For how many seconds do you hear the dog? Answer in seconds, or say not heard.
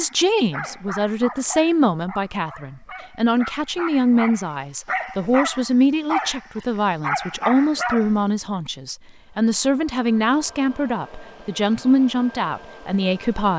8 s.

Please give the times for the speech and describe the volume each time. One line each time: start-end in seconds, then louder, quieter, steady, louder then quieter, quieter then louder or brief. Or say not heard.
0.0-13.5 steady.